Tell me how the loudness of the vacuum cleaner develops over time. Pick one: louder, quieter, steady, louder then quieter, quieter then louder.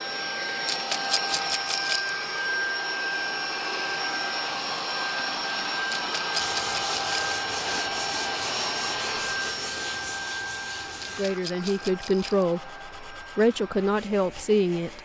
quieter.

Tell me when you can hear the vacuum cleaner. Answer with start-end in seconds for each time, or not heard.
0.0-15.0.